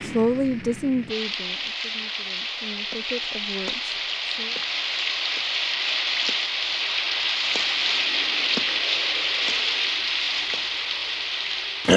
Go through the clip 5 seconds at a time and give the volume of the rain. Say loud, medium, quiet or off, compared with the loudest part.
medium, loud, loud.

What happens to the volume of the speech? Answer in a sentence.
The volume of the speech goes down, then up.